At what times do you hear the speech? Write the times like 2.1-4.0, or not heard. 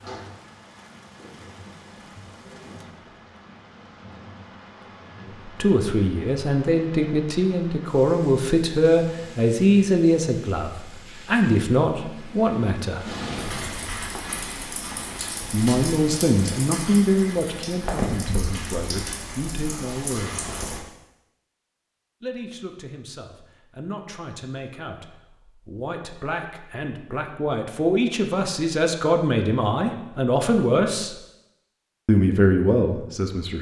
5.2-13.1, 15.5-20.4, 22.2-31.1, 32.0-33.5.